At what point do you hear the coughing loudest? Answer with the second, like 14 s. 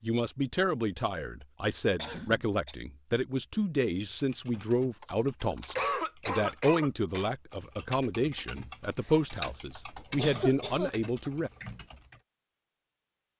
6 s.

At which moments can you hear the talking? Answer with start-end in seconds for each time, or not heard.
0.0-11.5.